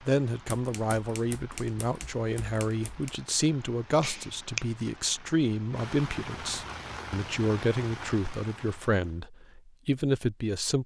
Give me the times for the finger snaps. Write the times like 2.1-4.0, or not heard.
4.0-4.7.